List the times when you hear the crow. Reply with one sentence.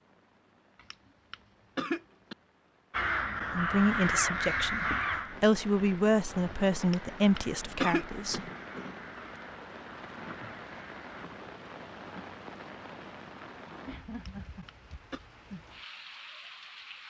The crow can be heard from 2.9 to 11.3 s.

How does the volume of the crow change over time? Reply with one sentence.
The volume of the crow goes down.